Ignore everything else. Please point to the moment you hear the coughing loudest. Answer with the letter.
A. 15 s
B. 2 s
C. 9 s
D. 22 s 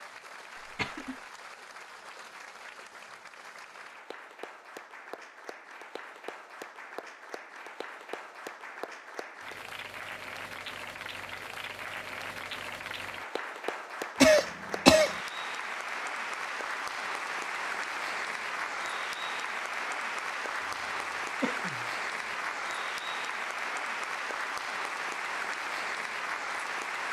A.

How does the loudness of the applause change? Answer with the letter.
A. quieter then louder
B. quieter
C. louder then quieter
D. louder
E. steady
D.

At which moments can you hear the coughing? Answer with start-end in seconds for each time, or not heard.
0.6-1.1, 14.2-15.2, 20.6-21.9.